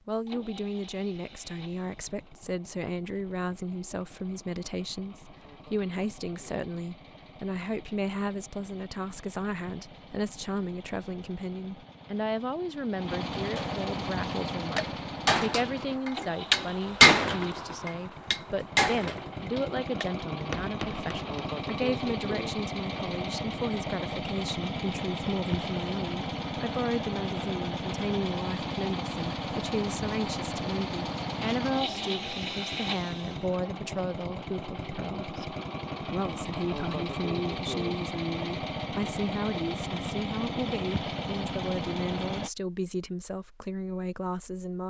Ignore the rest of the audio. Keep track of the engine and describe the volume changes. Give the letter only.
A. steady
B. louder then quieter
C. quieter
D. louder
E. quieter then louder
D.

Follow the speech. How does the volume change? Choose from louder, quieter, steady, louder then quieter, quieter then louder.
steady.